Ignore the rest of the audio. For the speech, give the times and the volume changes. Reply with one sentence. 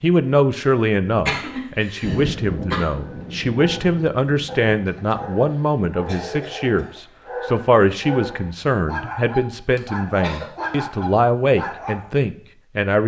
The speech can be heard from 0.0 to 13.0 s, at a steady volume.